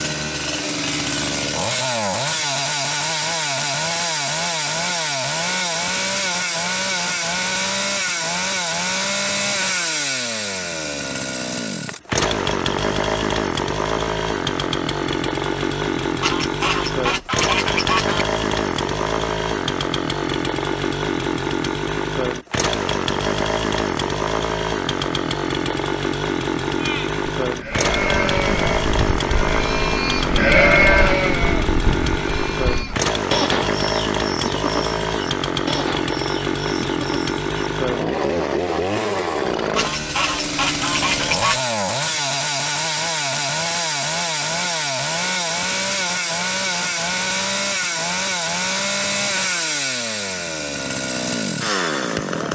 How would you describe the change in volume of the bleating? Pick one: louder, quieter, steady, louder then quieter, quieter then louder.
louder then quieter.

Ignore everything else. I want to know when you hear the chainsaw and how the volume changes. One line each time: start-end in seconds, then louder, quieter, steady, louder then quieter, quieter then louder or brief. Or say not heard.
0.0-52.5 steady.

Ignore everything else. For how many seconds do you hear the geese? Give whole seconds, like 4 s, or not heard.
4 s.